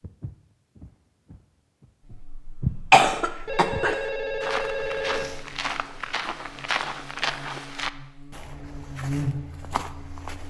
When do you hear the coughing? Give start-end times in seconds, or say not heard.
2.9-4.0.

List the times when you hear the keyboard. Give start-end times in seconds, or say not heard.
not heard.